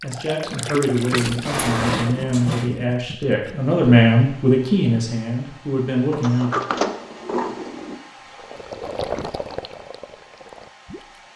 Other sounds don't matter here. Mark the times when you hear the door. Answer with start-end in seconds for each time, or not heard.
1.4-2.7, 6.1-8.0.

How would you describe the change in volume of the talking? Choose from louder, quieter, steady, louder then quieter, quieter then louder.
louder then quieter.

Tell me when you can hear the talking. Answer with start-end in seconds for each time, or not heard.
0.0-6.5.